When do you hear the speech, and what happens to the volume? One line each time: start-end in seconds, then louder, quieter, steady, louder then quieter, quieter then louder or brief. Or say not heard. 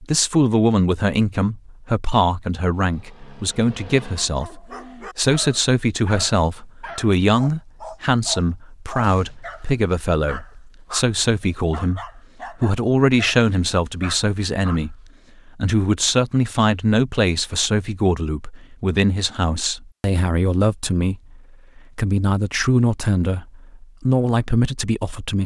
0.0-25.4 steady.